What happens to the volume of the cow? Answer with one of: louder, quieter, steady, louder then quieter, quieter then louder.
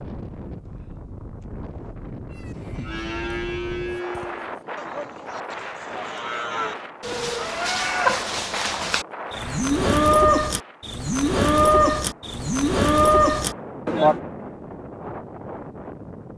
louder.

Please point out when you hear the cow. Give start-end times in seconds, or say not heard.
2.3-14.2.